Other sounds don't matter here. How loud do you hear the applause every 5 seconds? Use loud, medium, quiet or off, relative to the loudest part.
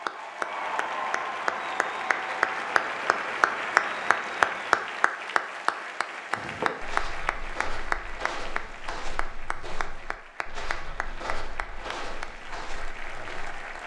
loud, medium, quiet.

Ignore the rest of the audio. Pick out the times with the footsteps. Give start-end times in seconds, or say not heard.
6.3-13.8.